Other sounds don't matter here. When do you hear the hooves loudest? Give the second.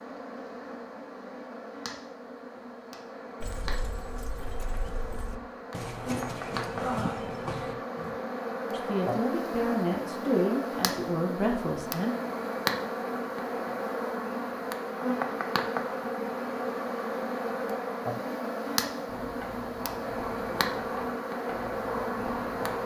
7 s.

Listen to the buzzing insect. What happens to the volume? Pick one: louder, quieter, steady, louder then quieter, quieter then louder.
louder.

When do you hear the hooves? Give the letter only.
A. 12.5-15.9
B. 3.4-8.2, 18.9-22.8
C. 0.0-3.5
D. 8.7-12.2
B.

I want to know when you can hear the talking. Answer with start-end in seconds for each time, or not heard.
8.7-12.2.